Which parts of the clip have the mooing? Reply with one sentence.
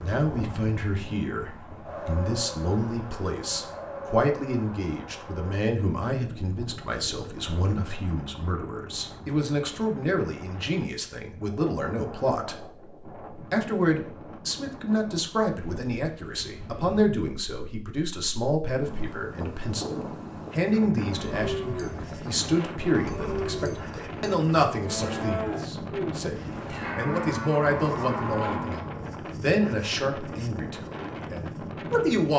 You can hear the mooing from 21.1 to 29.1 s.